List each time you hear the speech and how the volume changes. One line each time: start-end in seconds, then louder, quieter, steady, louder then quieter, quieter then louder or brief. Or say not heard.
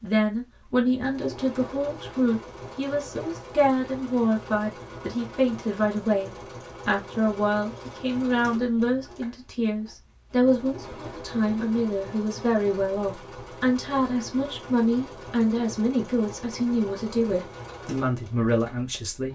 0.0-19.3 steady.